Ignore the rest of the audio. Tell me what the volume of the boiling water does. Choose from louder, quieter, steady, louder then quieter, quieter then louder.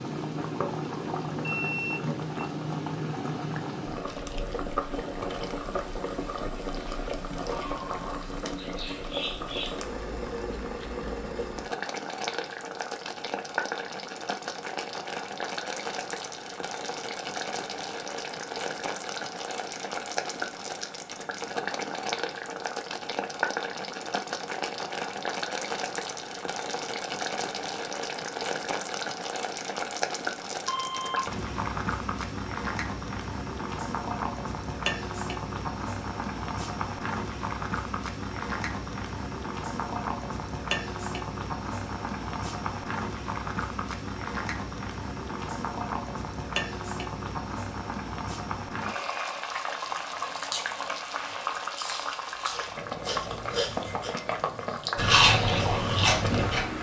steady.